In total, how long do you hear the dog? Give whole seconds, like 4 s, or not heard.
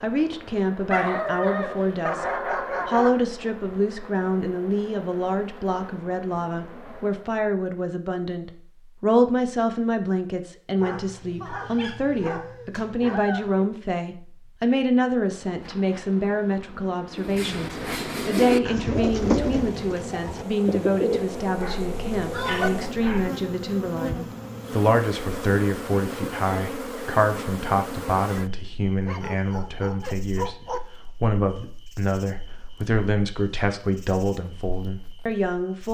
9 s.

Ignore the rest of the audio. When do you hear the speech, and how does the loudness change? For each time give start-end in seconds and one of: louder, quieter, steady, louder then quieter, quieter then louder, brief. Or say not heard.
0.0-35.8 steady.